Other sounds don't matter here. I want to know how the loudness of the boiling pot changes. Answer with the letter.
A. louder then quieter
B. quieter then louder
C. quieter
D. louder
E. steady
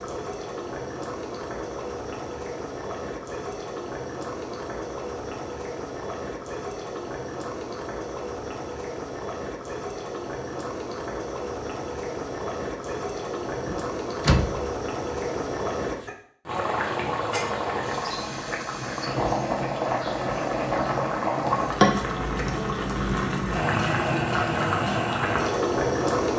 D.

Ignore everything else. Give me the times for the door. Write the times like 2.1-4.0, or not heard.
13.7-14.7.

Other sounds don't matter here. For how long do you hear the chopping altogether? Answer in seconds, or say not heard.
not heard.